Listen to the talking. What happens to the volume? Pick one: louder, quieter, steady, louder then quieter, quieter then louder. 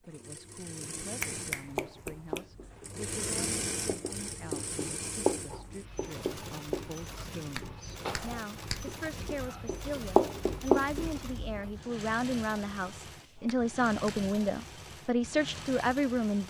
louder.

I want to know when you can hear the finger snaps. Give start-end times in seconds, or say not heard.
1.2-2.5, 7.5-8.9, 13.4-14.1.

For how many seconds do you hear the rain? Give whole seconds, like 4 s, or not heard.
not heard.